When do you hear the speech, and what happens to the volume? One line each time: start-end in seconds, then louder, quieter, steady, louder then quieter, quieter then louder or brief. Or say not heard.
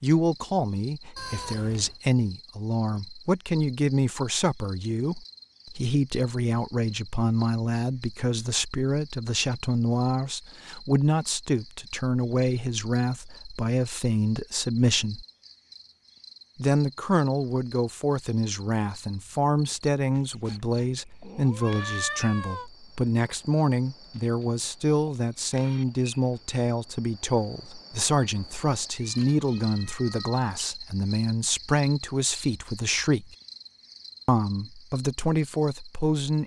0.0-15.2 steady
16.6-33.4 steady
34.2-36.4 brief.